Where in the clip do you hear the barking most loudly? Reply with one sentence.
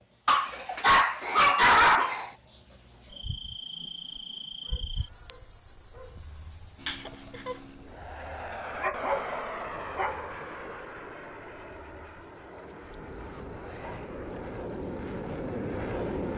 The loudest moment of the barking is at 2 seconds.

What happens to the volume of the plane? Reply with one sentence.
The volume of the plane goes down, then up.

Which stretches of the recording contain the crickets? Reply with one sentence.
The crickets can be heard from 0.0 to 16.3 s.